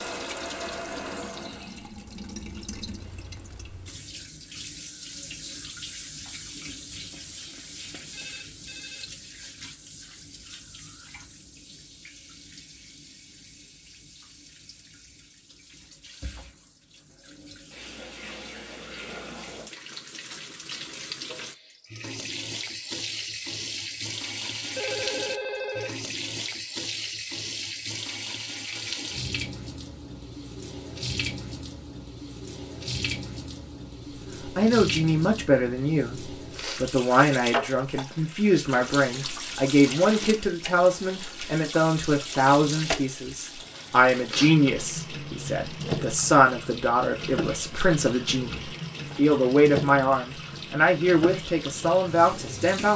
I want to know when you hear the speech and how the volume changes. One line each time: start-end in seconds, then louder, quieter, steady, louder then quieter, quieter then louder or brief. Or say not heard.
34.5-52.9 steady.